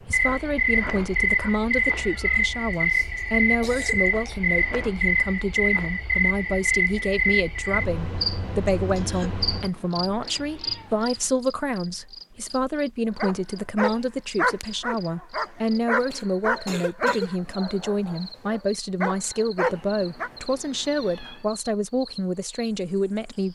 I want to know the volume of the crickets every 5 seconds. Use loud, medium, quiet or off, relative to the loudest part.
loud, loud, quiet, quiet, quiet.